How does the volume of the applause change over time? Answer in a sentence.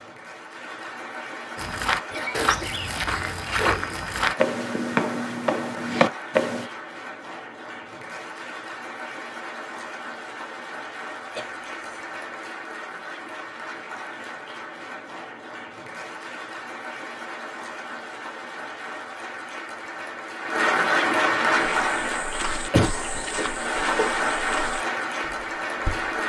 The loudness of the applause goes up.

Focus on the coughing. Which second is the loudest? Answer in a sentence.
The volume of the coughing peaks at 23 seconds.